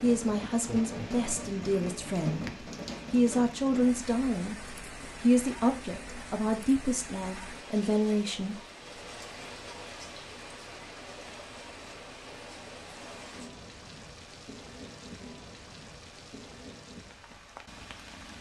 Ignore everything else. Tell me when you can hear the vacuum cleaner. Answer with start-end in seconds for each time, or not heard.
not heard.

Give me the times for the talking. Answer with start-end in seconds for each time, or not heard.
0.0-8.6.